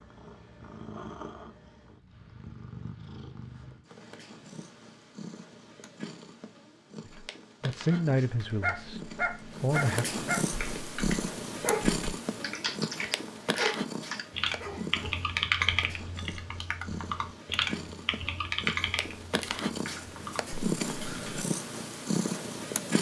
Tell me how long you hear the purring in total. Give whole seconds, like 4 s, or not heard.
23 s.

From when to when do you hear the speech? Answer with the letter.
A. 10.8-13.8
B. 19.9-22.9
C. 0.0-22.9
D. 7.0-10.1
D.